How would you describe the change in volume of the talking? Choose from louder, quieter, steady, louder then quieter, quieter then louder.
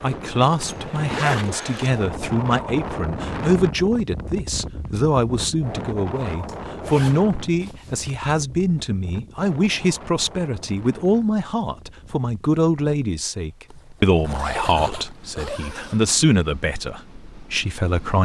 steady.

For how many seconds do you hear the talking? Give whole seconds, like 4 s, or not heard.
18 s.